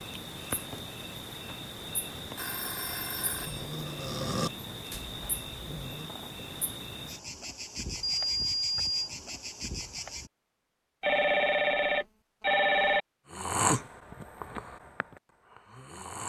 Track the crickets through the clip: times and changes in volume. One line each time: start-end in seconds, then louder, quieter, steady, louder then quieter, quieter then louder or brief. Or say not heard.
0.0-10.3 steady.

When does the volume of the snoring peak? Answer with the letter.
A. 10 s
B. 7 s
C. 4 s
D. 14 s
D.